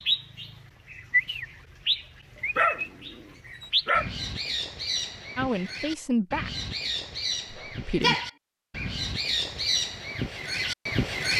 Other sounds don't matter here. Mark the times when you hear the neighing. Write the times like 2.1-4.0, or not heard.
not heard.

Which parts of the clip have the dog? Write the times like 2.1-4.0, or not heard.
2.5-4.1, 7.6-8.2.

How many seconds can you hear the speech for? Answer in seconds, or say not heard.
2 s.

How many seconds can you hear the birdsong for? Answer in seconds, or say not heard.
11 s.